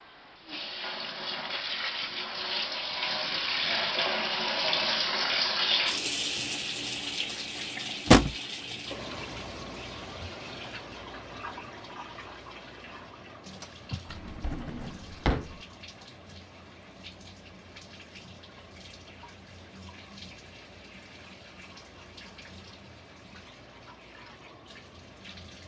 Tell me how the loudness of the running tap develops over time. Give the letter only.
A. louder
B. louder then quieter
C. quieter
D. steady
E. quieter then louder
C.